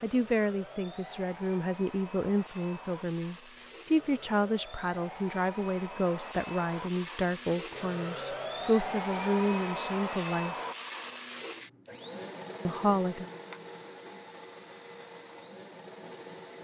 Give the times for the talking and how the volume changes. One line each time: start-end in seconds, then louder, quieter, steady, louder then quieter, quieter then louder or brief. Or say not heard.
0.0-10.6 steady
12.7-13.2 brief.